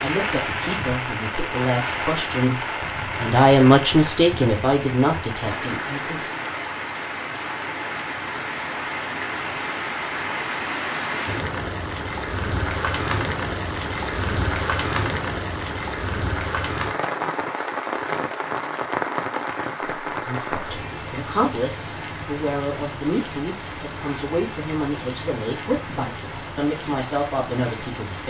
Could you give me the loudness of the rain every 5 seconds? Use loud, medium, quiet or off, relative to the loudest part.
loud, loud, loud, loud, medium, medium.